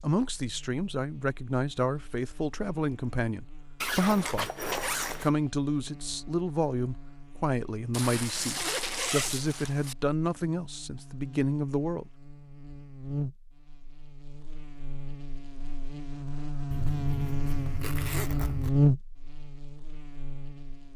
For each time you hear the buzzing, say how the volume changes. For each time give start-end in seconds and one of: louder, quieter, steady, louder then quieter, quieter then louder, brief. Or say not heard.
0.1-20.9 louder.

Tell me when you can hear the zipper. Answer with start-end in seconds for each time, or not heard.
3.8-5.3, 7.9-9.9, 16.7-18.7.